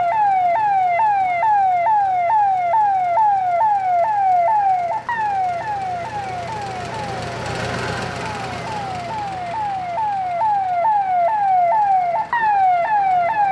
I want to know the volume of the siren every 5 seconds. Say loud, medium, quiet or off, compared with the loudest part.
loud, medium, loud.